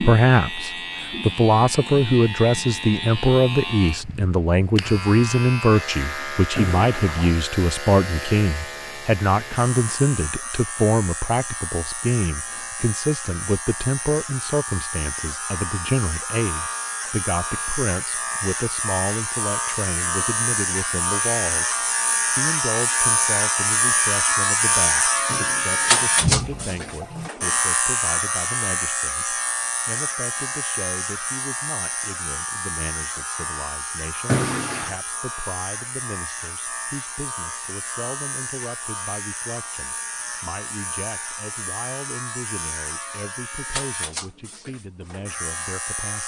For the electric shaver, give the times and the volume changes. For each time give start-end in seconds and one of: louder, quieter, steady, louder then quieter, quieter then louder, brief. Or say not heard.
0.0-46.2 louder then quieter.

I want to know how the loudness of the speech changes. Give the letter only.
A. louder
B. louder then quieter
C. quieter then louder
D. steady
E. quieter
E.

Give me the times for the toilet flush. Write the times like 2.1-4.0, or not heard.
6.5-7.3, 25.2-27.3, 34.2-35.0.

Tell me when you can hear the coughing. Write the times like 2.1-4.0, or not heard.
not heard.